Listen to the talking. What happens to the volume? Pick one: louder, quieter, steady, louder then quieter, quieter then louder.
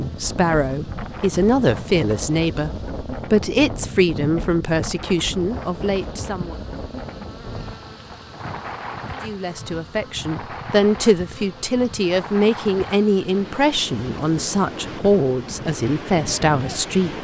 steady.